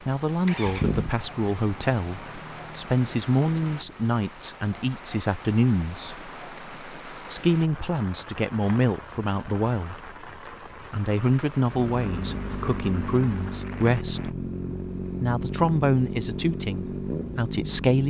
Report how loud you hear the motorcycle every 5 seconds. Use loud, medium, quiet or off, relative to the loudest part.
loud, off, loud, loud.